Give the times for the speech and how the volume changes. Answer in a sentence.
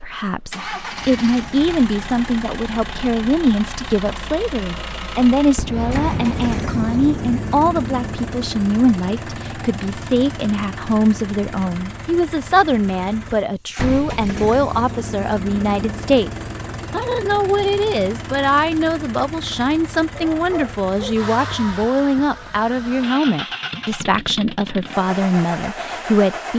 The speech can be heard from 0.0 to 26.5 s, at a steady volume.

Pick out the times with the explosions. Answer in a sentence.
You can hear the explosions from 5.5 to 8.3 s and from 13.8 to 14.2 s.